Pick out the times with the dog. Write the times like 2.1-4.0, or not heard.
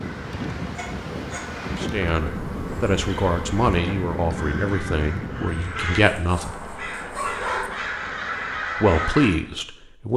0.8-1.5, 6.0-7.7.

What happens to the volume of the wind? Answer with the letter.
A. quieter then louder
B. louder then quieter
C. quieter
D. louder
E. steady
E.